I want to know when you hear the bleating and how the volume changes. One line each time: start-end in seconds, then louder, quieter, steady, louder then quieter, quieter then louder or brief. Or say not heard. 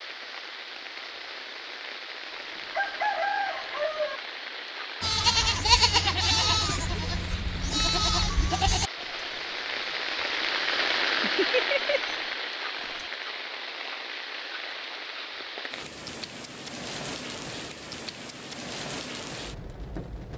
5.0-13.1 quieter then louder.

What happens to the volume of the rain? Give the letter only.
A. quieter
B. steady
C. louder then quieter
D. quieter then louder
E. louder
C.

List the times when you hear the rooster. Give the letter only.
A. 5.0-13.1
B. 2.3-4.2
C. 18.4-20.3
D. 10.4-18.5
B.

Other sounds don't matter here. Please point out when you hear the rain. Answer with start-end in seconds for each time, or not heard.
0.0-20.3.